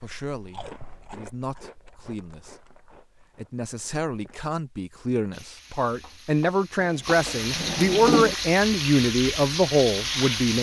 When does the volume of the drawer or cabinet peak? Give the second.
8 s.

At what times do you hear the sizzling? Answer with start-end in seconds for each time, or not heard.
5.3-10.5.